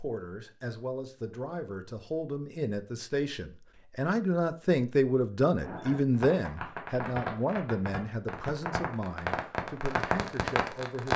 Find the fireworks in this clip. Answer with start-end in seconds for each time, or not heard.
5.6-11.1.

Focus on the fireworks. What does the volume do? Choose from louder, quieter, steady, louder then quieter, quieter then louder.
louder.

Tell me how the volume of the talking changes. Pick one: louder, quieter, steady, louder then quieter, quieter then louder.
louder then quieter.